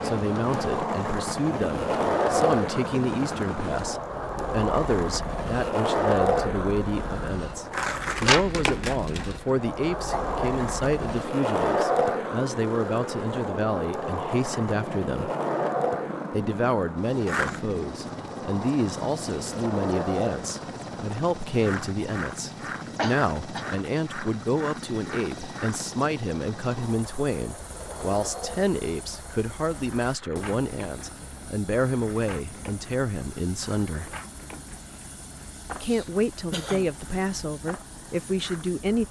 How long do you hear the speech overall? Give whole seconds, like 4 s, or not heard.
36 s.